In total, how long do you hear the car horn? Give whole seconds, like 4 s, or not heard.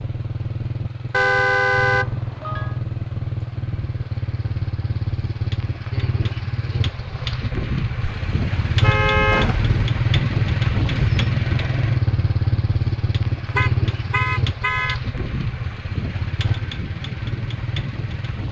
5 s.